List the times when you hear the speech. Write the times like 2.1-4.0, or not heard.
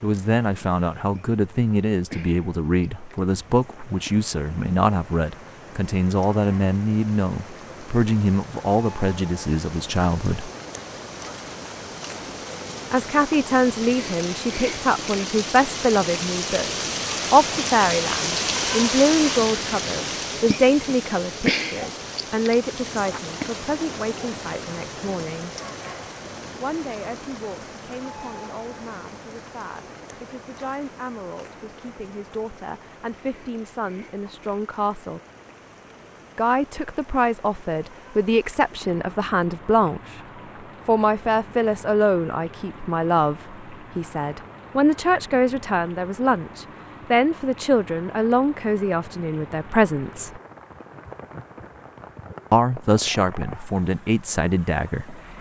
0.0-10.5, 12.9-25.6, 26.6-35.2, 36.4-40.1, 40.9-50.4, 52.5-55.3.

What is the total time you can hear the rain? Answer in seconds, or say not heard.
55 s.